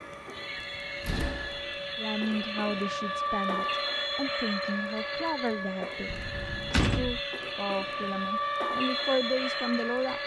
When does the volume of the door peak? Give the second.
7 s.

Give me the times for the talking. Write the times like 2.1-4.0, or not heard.
1.9-6.2, 6.9-10.2.